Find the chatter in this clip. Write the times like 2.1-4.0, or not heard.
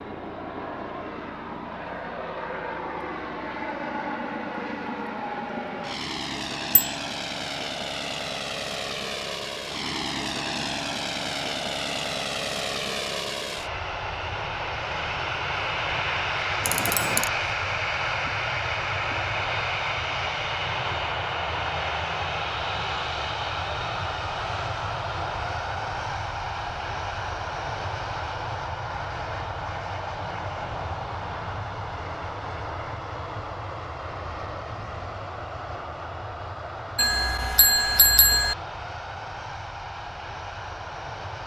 not heard.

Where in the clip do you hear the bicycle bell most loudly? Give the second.
38 s.